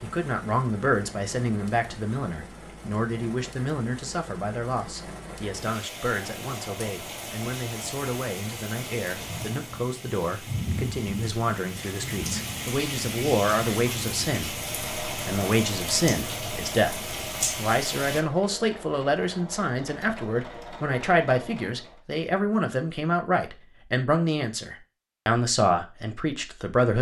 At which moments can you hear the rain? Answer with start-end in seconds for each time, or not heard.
0.0-18.2.